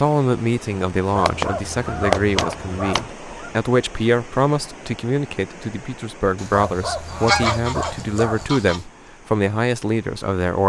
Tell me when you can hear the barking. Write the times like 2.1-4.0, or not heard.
1.1-3.1, 6.5-8.5.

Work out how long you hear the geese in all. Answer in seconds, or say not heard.
5 s.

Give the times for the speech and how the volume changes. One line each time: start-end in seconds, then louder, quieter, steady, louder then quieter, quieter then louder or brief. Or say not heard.
0.0-10.6 steady.